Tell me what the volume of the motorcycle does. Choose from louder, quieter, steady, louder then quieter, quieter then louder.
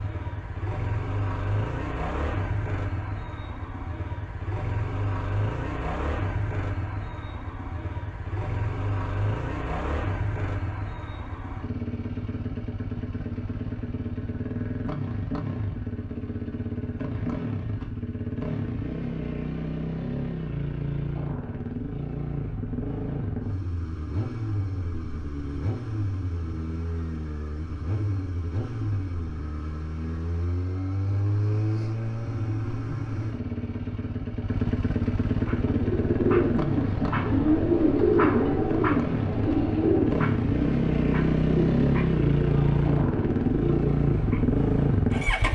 louder.